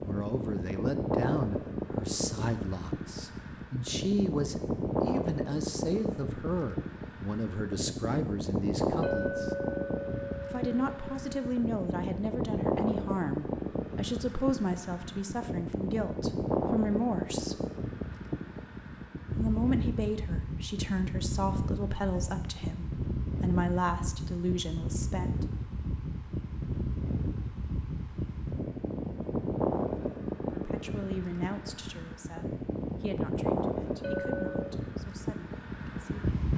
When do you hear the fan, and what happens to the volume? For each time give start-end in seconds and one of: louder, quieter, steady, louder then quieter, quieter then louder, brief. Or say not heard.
0.0-36.5 steady.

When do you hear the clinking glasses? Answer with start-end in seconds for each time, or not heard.
9.0-11.4, 34.0-34.6.